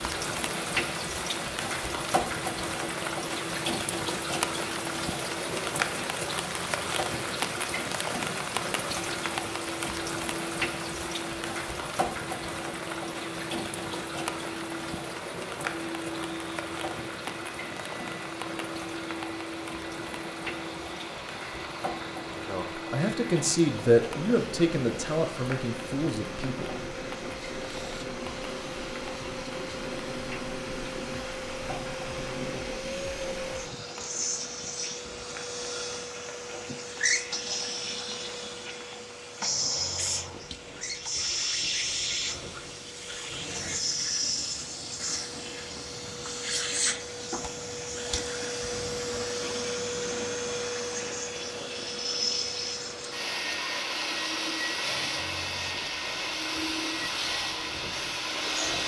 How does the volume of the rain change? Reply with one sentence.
The loudness of the rain goes down.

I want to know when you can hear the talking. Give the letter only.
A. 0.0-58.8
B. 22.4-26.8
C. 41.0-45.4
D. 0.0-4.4
B.